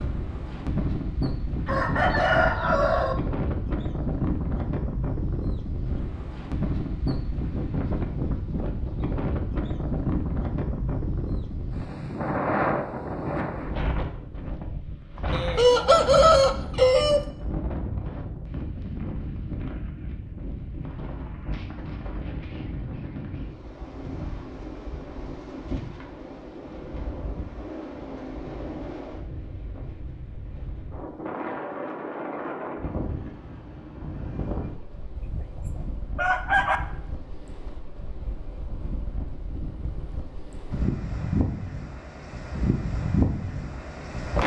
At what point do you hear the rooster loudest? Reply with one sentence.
The loudest moment of the rooster is at 16 seconds.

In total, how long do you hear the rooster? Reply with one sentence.
You can hear the rooster for 5 seconds altogether.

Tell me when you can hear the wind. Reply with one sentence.
You can hear the wind from 0.0 to 44.4 s.